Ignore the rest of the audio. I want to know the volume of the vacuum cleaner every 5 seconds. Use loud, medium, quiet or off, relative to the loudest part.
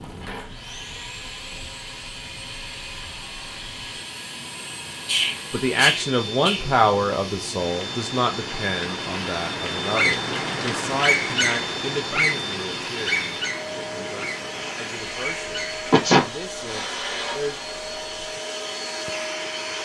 medium, loud, loud, loud.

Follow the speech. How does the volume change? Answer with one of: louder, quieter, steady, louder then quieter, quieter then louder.
quieter.